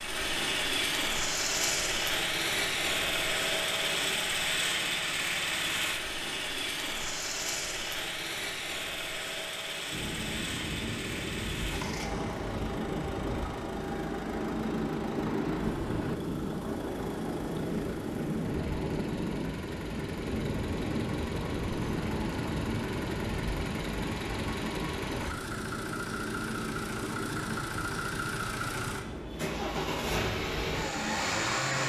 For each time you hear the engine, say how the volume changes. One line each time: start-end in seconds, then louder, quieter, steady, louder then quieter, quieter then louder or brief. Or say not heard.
0.0-31.8 quieter then louder.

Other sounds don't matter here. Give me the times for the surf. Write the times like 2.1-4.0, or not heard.
9.9-31.8.